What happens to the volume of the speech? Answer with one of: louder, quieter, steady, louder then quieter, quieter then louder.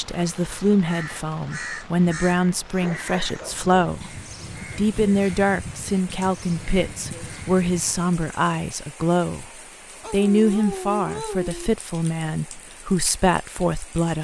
steady.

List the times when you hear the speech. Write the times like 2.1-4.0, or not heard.
0.0-4.0, 4.8-9.4, 10.1-14.1.